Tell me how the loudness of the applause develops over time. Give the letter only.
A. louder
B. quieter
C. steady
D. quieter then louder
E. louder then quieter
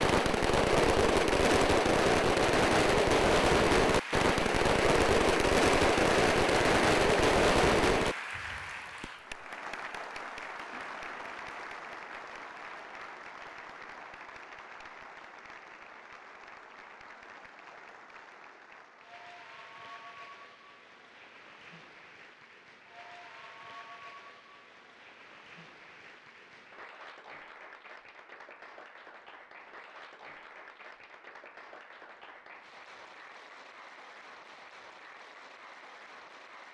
B.